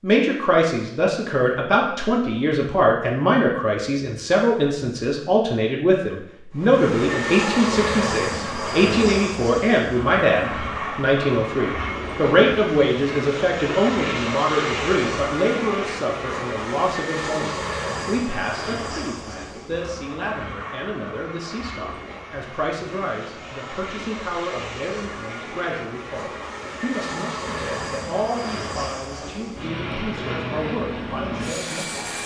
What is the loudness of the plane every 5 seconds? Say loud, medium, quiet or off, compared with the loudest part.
off, loud, loud, loud, medium, medium, loud.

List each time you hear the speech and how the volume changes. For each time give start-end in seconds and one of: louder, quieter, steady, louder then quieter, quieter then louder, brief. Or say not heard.
0.0-32.2 quieter.